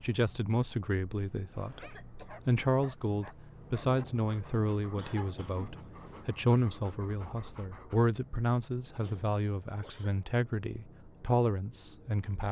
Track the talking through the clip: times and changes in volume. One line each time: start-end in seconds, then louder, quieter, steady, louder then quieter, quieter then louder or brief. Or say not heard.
0.0-12.4 steady.